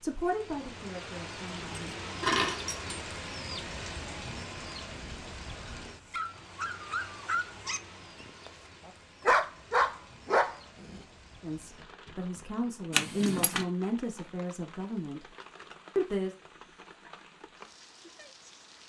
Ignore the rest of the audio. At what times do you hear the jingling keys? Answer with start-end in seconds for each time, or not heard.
1.4-3.0, 12.9-13.7.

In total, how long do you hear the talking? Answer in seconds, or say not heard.
6 s.